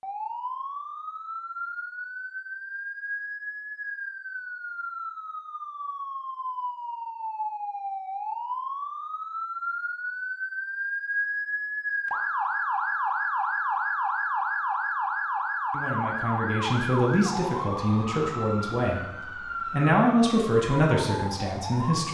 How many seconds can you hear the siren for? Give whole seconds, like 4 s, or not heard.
22 s.